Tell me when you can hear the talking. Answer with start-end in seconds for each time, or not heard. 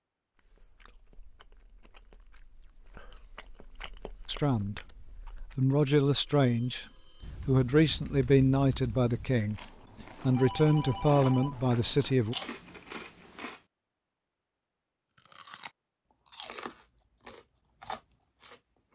4.2-4.8, 5.5-6.8, 7.5-12.3.